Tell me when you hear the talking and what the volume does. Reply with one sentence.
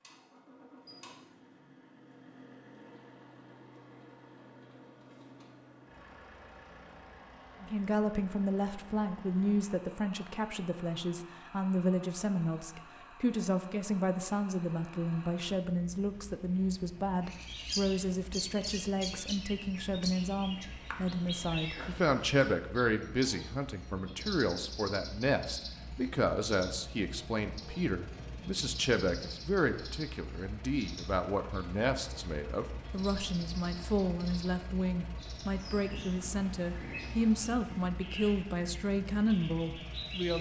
You can hear the talking from 7.6 to 40.3 s, at a steady volume.